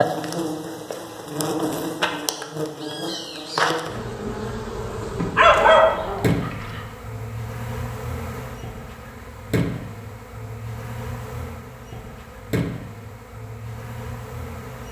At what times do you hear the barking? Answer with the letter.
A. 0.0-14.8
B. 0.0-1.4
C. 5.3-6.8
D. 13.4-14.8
C.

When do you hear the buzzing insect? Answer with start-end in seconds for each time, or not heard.
0.0-14.8.